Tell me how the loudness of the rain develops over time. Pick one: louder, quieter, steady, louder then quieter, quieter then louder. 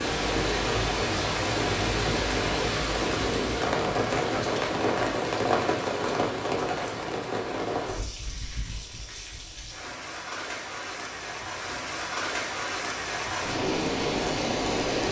quieter then louder.